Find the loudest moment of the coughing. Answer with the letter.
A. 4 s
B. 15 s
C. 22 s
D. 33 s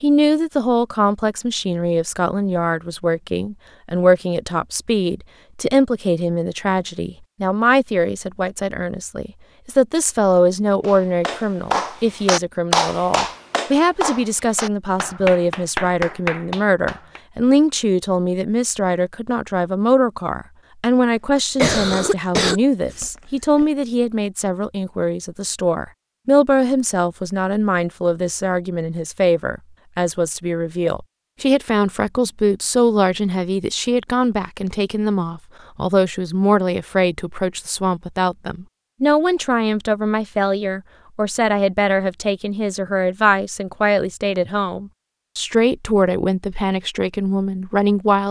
C.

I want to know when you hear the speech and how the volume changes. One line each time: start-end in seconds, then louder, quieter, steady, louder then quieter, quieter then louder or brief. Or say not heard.
0.0-48.2 steady.